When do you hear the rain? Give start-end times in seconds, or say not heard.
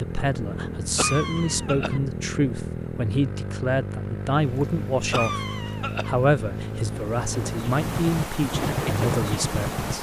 4.2-9.9.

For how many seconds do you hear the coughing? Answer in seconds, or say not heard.
2 s.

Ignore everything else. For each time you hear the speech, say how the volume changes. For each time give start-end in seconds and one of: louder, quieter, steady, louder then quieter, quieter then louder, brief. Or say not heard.
0.0-9.9 steady.